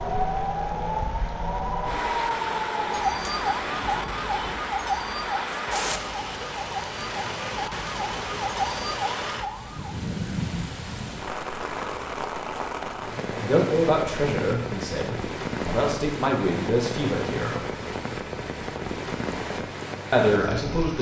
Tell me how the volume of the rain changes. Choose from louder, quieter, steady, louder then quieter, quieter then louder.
steady.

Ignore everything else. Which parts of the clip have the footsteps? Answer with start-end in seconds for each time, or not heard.
not heard.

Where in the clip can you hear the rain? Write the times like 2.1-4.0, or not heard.
0.0-20.9.